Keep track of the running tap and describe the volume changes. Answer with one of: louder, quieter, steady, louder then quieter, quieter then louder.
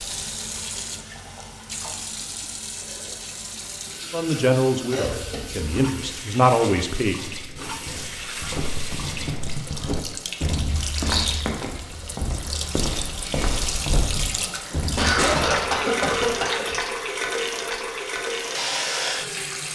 louder.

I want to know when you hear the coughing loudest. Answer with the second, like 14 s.
15 s.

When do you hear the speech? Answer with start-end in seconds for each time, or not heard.
4.1-7.2.